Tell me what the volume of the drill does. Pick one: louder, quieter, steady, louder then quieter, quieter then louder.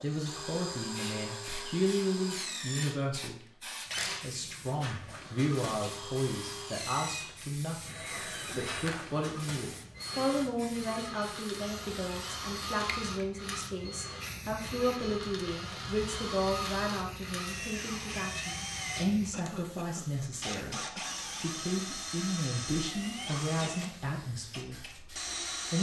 steady.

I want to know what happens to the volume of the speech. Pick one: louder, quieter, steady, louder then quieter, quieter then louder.
steady.